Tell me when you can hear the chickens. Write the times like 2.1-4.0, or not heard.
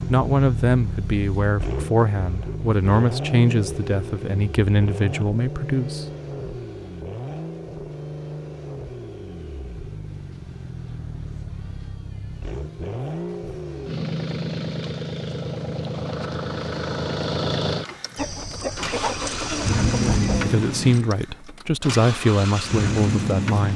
18.1-20.6.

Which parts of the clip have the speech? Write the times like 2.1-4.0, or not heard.
0.1-6.0, 19.9-23.7.